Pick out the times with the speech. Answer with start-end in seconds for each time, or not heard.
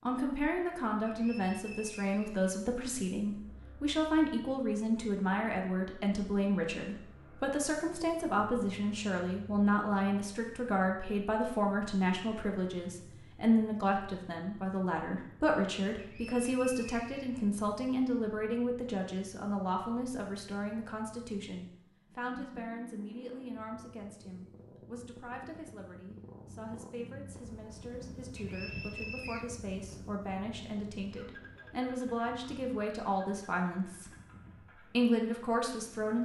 0.1-34.1, 34.9-36.2.